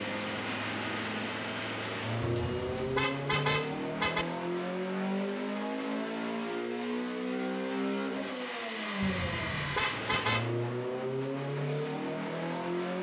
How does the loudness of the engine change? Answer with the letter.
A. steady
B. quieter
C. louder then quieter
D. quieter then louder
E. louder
A.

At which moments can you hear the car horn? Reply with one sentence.
The car horn can be heard from 2.2 to 4.2 s and from 9.0 to 10.4 s.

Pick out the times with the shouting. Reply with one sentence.
The shouting can't be heard in this clip.